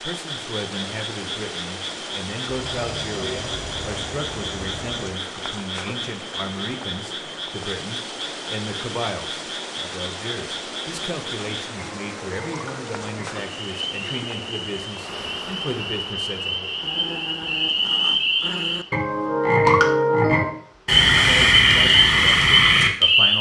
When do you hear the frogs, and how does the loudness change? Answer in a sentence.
You can hear the frogs from 0.0 to 23.3 s, getting louder.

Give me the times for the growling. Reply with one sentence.
The growling can be heard from 2.5 to 5.2 s and from 16.8 to 18.9 s.